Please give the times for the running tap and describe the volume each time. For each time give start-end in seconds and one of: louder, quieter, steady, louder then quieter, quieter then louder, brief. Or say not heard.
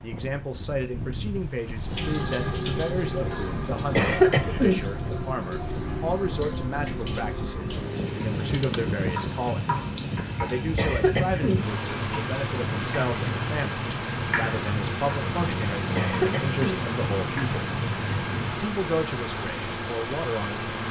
1.8-18.8 steady.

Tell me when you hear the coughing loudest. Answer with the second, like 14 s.
4 s.